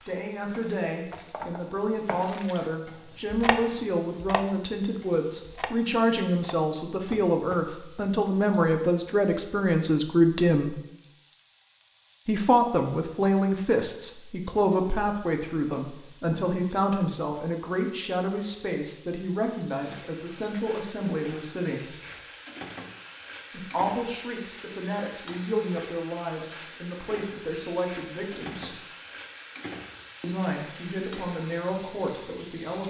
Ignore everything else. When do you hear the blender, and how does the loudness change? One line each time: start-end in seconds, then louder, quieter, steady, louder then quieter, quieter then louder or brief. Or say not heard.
not heard.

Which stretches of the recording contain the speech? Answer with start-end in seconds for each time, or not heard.
0.1-10.8, 12.2-21.9, 23.5-28.8, 30.2-32.8.